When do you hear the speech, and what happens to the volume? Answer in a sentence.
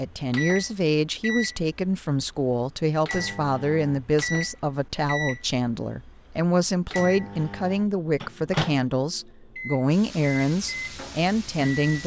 The speech can be heard from 0.0 to 12.0 s, at a steady volume.